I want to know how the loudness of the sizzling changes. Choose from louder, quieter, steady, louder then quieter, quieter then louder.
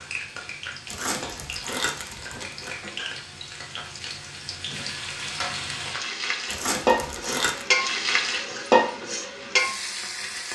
louder.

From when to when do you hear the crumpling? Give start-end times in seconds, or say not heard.
0.8-2.8, 6.5-7.7.